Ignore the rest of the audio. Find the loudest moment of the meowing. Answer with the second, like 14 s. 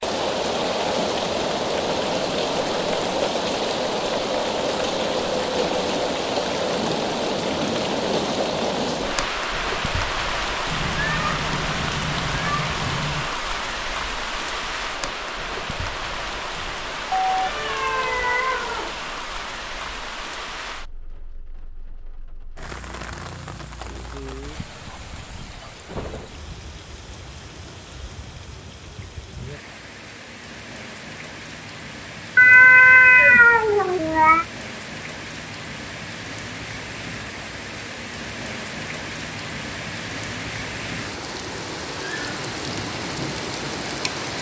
33 s.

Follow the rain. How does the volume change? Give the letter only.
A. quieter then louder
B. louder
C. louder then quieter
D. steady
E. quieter
A.